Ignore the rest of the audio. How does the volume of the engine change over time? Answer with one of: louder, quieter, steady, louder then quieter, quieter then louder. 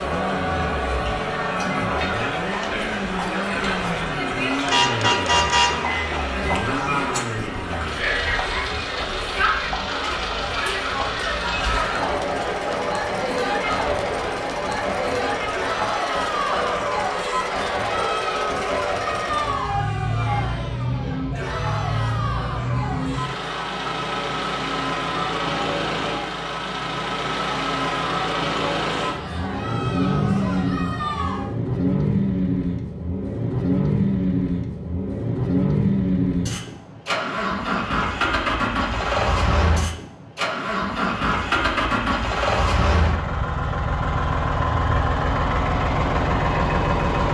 louder.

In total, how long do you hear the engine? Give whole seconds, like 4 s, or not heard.
47 s.